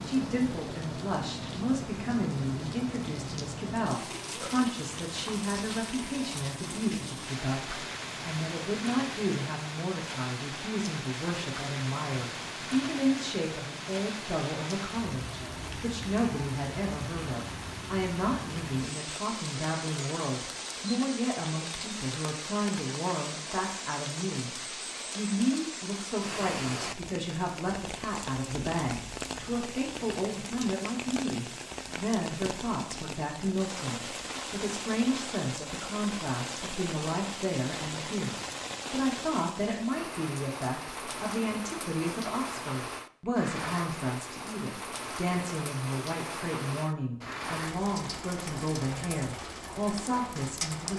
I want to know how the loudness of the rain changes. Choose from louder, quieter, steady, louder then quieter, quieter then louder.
steady.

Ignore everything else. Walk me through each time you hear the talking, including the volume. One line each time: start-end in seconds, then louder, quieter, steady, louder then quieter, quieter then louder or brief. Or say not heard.
0.0-24.5 steady
25.1-50.9 steady.